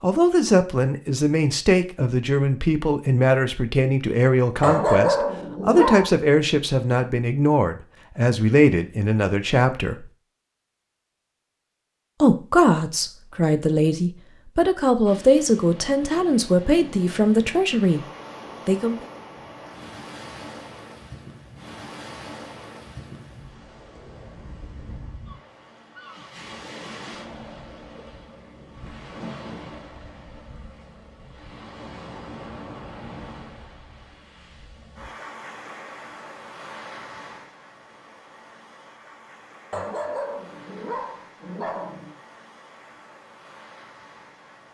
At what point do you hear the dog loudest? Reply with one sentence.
The volume of the dog peaks at 5 seconds.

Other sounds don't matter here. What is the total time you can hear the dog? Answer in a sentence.
You can hear the dog for 4 seconds altogether.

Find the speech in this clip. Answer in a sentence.
The speech can be heard from 0.0 to 10.1 s, from 12.2 to 18.1 s and from 18.6 to 19.1 s.